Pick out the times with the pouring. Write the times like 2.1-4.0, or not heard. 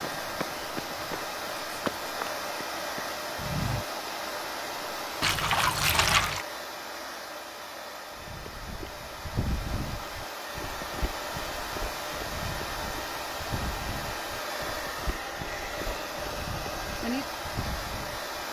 5.2-6.5.